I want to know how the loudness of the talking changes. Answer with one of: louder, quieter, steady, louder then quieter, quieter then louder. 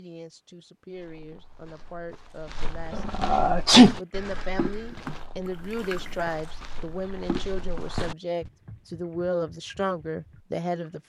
louder.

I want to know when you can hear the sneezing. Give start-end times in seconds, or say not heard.
2.9-4.0.